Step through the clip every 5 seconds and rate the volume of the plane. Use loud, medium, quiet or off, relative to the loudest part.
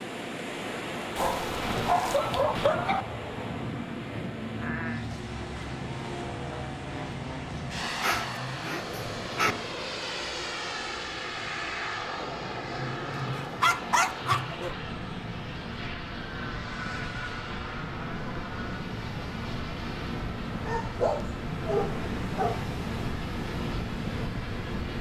loud, loud, loud, medium, medium.